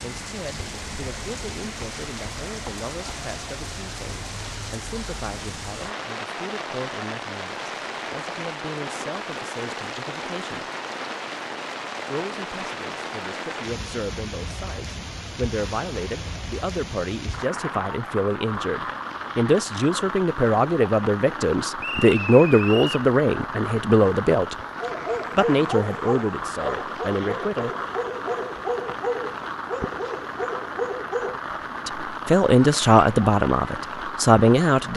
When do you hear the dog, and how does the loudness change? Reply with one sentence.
You can hear the dog from 24.8 to 31.4 s, at a steady volume.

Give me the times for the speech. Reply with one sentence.
The speech can be heard from 0.0 to 10.7 s, from 12.1 to 24.6 s, from 25.4 to 27.7 s and from 31.9 to 34.9 s.